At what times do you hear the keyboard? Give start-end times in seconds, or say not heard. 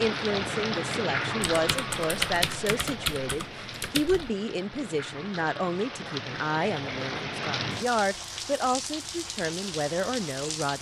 1.4-4.3.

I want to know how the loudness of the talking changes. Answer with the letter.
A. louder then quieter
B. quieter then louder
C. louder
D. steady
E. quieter
D.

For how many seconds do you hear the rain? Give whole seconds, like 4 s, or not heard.
11 s.